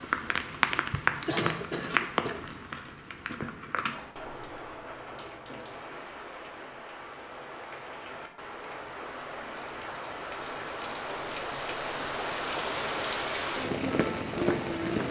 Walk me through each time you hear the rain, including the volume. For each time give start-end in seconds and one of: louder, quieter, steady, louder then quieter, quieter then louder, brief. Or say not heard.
0.0-15.0 quieter then louder.